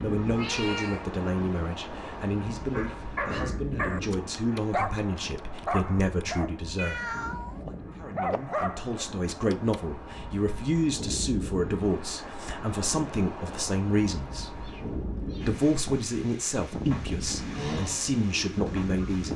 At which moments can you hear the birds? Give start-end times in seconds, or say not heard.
not heard.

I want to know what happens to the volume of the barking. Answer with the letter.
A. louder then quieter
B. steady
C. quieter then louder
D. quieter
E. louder
C.